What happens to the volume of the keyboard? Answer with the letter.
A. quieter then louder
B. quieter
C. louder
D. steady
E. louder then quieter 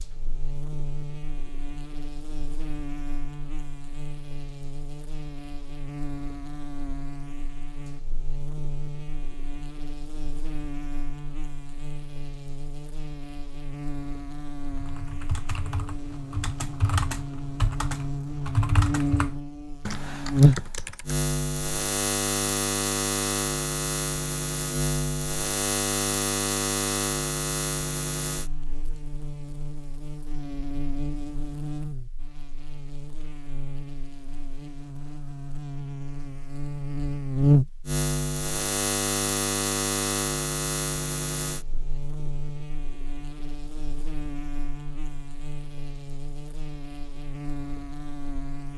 E.